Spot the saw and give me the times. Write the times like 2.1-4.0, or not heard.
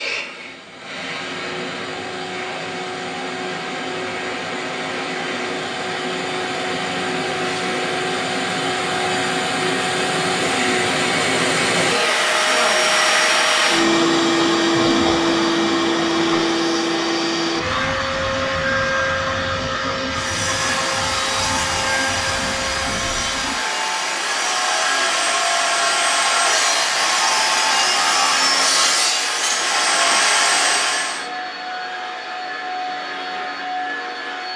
20.1-31.2.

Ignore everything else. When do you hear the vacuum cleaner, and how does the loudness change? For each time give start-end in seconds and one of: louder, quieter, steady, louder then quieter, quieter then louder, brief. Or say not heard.
0.0-34.5 louder then quieter.